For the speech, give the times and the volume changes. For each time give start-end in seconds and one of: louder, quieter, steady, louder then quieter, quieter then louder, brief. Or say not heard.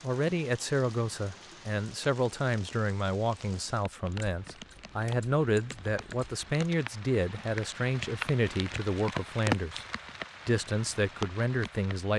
0.0-9.8 steady
10.4-12.1 brief.